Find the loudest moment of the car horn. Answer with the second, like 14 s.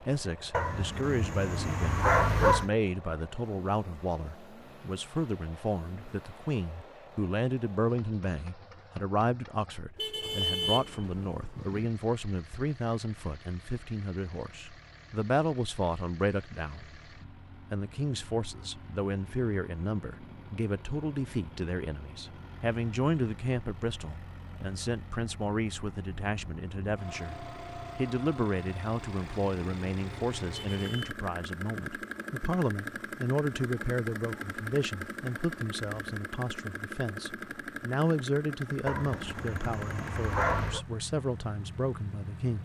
11 s.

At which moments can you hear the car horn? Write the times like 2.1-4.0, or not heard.
9.9-11.8, 30.5-31.1.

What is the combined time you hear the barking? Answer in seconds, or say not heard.
4 s.